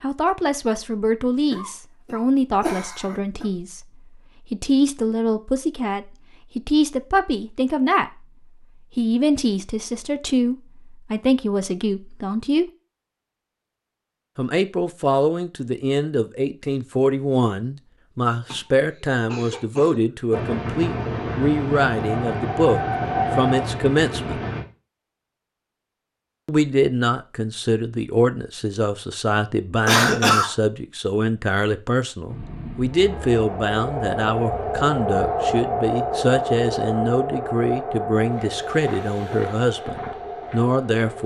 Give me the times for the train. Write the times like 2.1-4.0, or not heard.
20.3-24.6, 32.2-41.2.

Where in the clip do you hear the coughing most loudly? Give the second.
30 s.